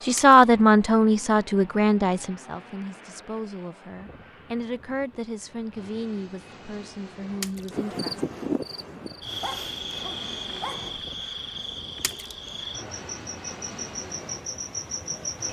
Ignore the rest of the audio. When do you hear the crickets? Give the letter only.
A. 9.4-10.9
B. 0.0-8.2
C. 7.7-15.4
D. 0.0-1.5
C.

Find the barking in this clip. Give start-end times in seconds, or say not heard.
9.4-10.9.